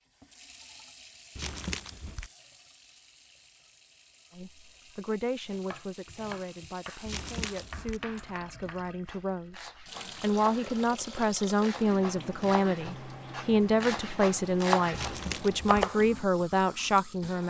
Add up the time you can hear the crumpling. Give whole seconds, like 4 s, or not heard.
3 s.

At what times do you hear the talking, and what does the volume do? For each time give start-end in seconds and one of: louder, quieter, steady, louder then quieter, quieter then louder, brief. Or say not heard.
4.3-17.4 louder.